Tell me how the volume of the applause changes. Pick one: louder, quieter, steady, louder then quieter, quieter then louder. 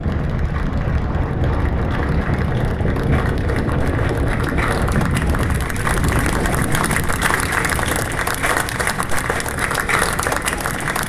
louder.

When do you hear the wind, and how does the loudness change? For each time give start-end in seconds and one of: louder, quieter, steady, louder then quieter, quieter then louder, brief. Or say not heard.
0.0-11.0 quieter.